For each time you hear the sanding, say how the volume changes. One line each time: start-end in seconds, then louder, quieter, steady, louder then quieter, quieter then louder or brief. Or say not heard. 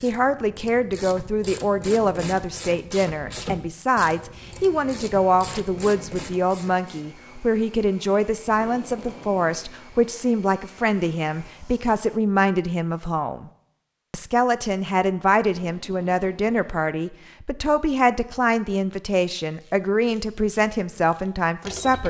not heard.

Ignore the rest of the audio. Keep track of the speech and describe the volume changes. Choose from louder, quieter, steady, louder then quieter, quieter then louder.
steady.